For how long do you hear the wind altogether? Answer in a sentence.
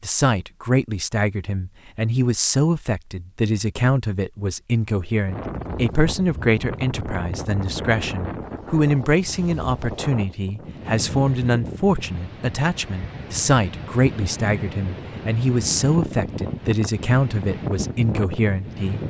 You can hear the wind for 14 seconds altogether.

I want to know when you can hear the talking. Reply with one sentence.
You can hear the talking from 0.0 to 19.0 s.